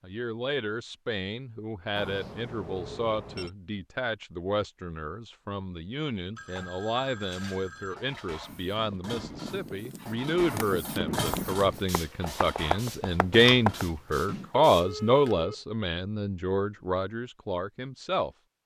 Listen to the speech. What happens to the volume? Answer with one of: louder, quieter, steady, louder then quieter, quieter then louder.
louder.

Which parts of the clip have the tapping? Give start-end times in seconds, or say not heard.
10.6-13.8.